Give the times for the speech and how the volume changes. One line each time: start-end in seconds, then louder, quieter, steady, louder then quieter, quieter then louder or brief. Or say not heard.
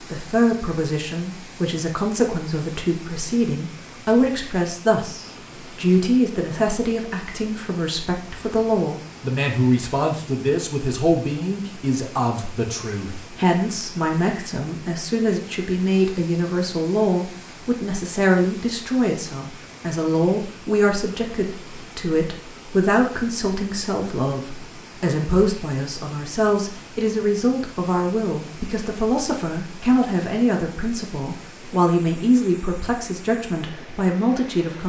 0.1-34.8 steady.